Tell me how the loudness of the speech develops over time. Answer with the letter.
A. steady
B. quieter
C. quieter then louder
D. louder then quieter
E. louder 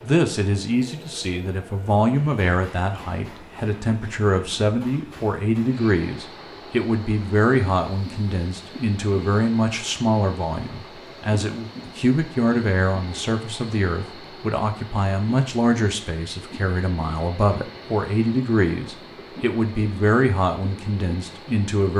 A.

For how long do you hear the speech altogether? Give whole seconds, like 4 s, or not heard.
22 s.